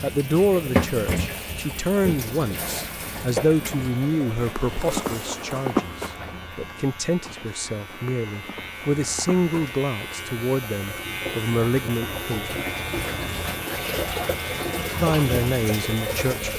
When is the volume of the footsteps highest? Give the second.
6 s.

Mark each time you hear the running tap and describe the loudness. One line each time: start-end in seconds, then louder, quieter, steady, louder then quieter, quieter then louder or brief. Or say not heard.
0.0-16.5 quieter then louder.